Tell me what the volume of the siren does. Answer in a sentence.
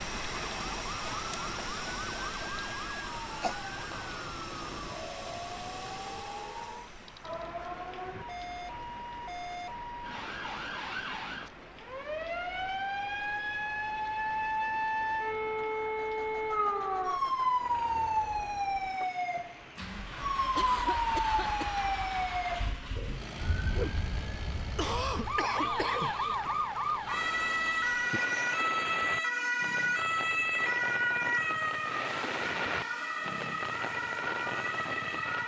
The volume of the siren goes up.